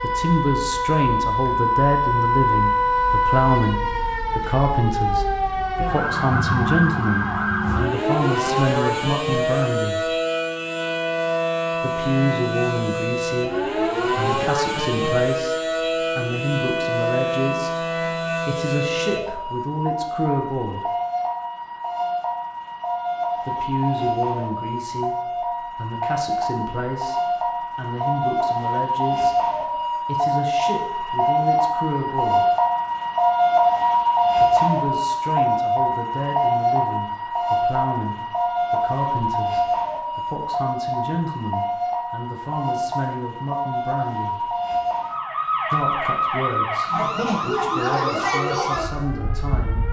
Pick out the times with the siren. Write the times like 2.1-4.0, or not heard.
0.0-49.8.